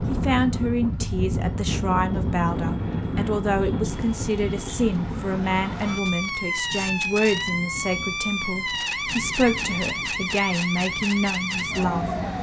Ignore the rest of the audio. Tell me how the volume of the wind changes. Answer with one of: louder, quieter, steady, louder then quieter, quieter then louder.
quieter.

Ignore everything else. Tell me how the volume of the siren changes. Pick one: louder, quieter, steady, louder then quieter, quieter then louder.
louder.